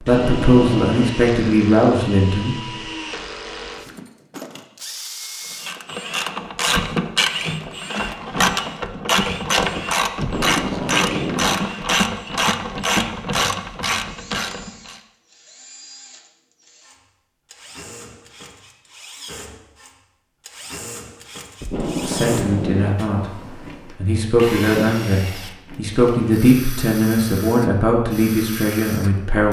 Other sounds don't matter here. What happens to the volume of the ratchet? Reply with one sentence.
The loudness of the ratchet stays about the same.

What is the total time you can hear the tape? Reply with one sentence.
The tape can be heard for 4 seconds in total.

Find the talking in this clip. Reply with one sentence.
You can hear the talking from 0.0 to 2.5 s, from 22.1 to 23.2 s and from 23.9 to 29.4 s.